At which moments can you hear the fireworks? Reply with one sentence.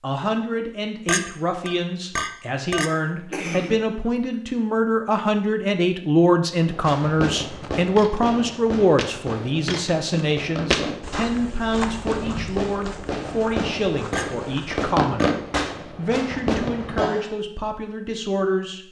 The fireworks can be heard from 6.6 to 17.1 s.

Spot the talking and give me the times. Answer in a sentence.
The talking can be heard from 0.0 to 18.8 s.